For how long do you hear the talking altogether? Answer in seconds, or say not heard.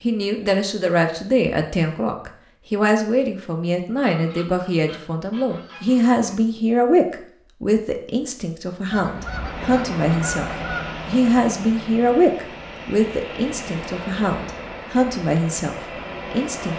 17 s.